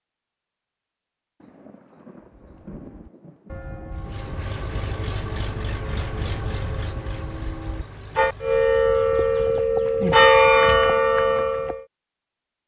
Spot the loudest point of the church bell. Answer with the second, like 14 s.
10 s.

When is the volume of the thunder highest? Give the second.
3 s.